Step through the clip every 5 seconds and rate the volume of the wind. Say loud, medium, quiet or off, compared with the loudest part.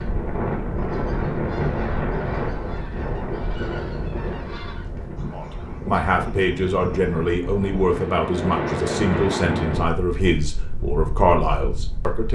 loud, loud, medium.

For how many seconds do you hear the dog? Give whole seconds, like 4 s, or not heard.
not heard.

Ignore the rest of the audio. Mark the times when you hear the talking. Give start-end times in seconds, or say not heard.
5.3-12.3.